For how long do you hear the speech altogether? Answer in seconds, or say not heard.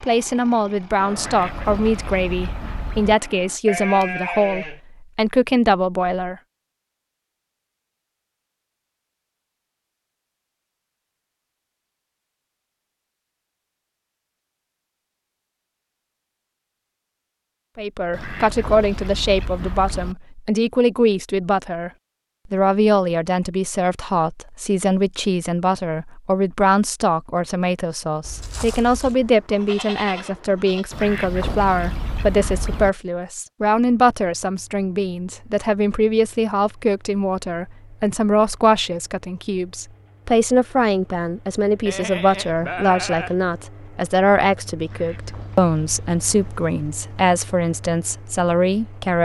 37 s.